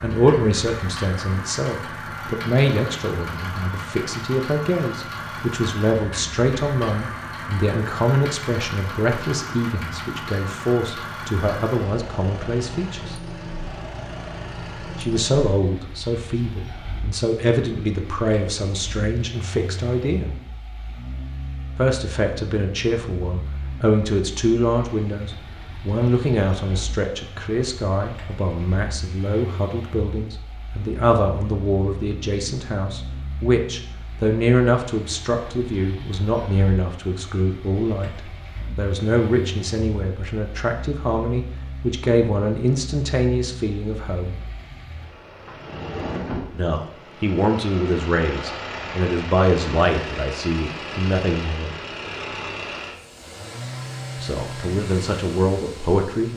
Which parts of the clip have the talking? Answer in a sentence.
You can hear the talking from 0.0 to 13.2 s, from 14.9 to 20.4 s, from 21.8 to 44.4 s, from 46.5 to 51.8 s and from 54.1 to 56.3 s.